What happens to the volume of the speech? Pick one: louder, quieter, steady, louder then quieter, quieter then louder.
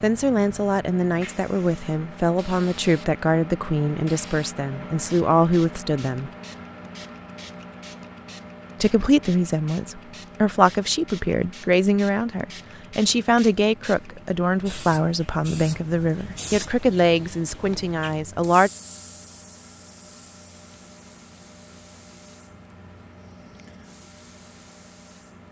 steady.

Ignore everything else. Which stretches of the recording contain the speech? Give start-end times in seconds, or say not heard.
0.0-6.3, 8.8-18.7.